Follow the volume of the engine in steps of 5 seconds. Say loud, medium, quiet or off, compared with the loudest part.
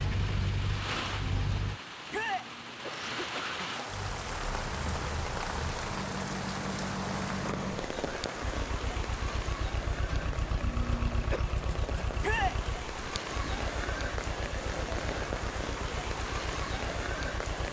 loud, loud, loud, medium.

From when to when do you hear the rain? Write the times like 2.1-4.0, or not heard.
0.0-17.6.